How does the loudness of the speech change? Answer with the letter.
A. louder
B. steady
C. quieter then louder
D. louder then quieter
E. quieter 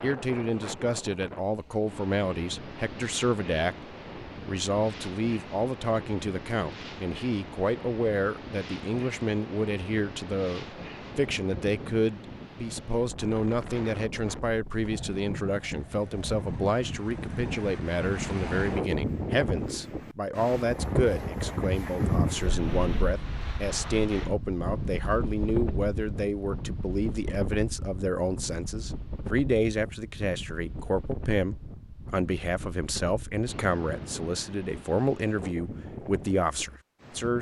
B.